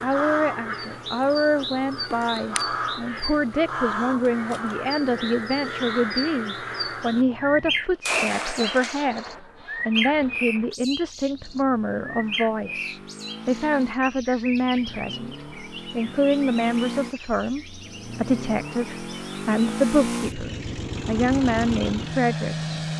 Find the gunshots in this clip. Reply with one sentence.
You can hear the gunshots from 8.1 to 9.4 s.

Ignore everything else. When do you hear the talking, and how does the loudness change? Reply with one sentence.
You can hear the talking from 0.0 to 22.8 s, at a steady volume.